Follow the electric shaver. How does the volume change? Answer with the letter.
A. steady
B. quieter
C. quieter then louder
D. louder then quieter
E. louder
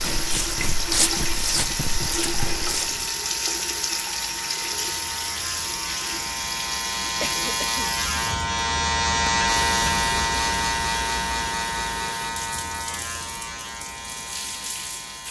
D.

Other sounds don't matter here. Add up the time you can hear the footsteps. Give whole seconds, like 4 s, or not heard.
3 s.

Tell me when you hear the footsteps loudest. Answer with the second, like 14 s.
1 s.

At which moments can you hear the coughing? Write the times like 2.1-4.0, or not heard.
7.2-8.0.